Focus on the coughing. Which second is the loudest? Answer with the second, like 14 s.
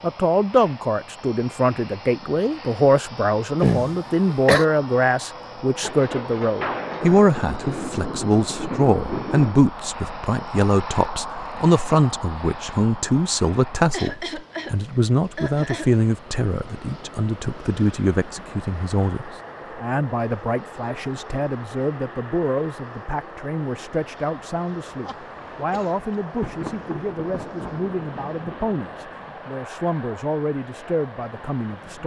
4 s.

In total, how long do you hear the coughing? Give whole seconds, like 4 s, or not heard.
4 s.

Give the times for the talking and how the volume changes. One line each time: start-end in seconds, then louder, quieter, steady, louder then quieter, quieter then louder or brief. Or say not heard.
0.0-32.0 quieter.